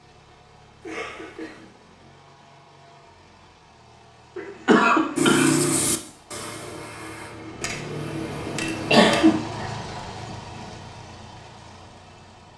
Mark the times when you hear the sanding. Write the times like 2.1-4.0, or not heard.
5.2-8.9.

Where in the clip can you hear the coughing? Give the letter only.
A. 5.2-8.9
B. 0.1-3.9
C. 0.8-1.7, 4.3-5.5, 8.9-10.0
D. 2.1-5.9
C.